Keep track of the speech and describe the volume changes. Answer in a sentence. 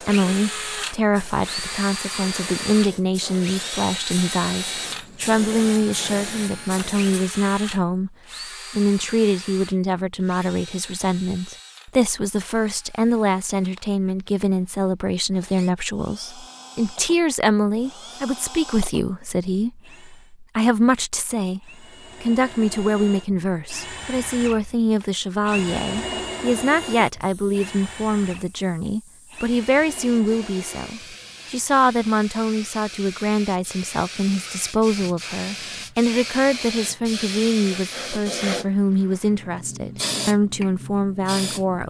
The loudness of the speech stays about the same.